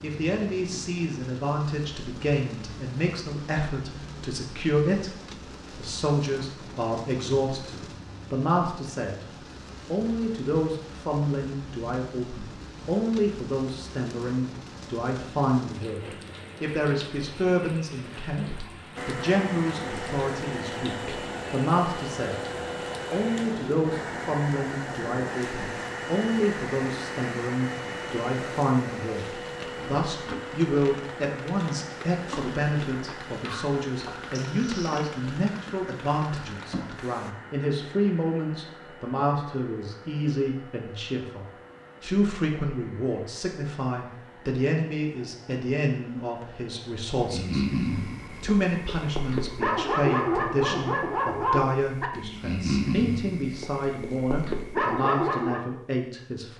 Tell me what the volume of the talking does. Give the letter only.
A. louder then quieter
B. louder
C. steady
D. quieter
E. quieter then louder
C.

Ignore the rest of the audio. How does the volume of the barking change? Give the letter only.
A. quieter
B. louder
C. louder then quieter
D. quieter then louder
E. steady
E.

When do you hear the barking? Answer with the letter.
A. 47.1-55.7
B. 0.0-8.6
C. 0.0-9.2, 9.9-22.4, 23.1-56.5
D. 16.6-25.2
A.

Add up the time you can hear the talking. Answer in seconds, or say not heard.
55 s.